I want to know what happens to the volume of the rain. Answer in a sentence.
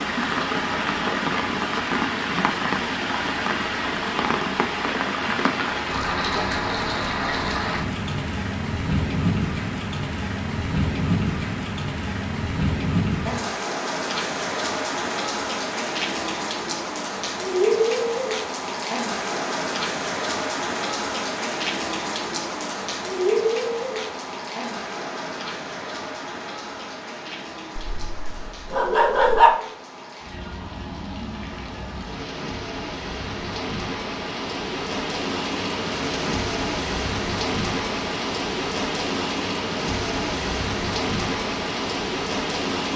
The volume of the rain goes down, then up.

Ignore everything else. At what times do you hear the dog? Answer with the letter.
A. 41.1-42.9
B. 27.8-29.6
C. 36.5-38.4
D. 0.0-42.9
B.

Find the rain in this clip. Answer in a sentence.
You can hear the rain from 0.0 to 42.9 s.